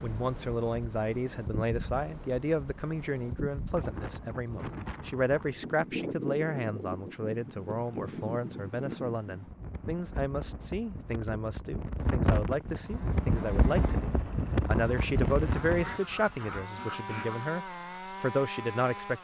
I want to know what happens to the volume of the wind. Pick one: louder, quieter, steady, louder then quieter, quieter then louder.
louder.